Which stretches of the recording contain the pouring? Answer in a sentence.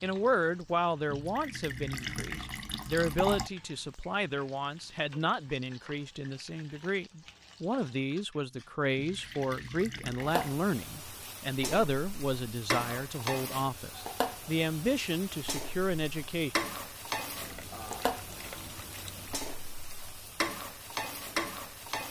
You can hear the pouring from 1.1 to 3.5 s, from 8.9 to 10.6 s and from 17.4 to 19.4 s.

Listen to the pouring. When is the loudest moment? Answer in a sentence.
The loudest moment of the pouring is at 3 seconds.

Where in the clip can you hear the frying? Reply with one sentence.
You can hear the frying from 0.0 to 22.0 s.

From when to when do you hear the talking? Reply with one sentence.
The talking can be heard from 0.0 to 16.6 s.